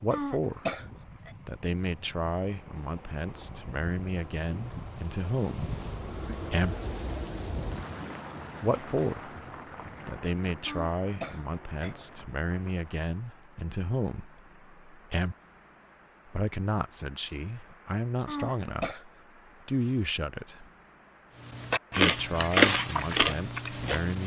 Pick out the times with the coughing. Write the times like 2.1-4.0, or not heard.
0.1-1.3, 10.7-11.9, 18.2-19.1.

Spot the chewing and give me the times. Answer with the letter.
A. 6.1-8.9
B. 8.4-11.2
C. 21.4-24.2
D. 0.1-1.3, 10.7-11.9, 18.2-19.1
C.